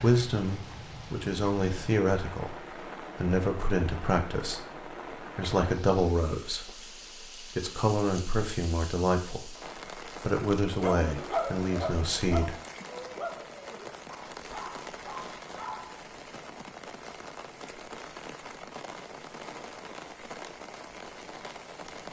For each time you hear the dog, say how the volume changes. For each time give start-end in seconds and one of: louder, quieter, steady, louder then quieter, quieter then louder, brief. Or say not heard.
10.8-16.0 quieter.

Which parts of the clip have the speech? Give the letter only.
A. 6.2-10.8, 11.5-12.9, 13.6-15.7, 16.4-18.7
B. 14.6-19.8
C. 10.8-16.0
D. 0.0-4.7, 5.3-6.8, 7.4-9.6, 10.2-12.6
D.